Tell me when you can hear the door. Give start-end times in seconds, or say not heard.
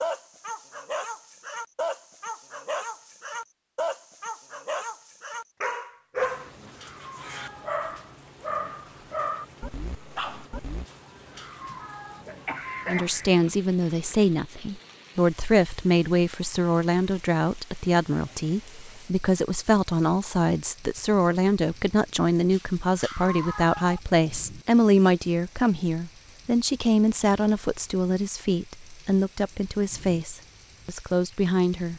not heard.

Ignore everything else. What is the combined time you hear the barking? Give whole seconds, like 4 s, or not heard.
11 s.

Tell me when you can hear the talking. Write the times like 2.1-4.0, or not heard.
12.8-31.9.